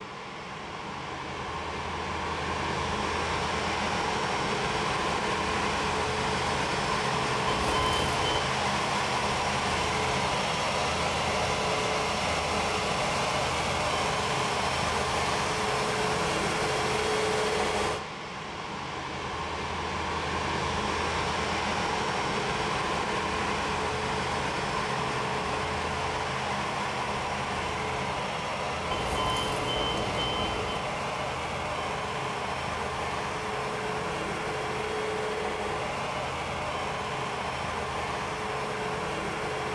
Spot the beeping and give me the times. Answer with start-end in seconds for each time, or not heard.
7.5-8.4, 28.9-30.8.